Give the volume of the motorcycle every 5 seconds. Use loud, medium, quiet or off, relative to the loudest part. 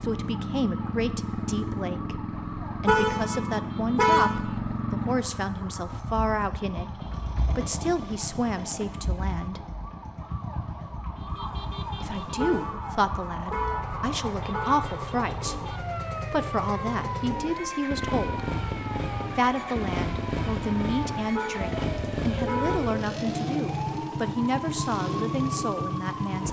loud, medium, medium, loud, loud, loud.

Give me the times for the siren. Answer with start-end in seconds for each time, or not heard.
0.0-26.4.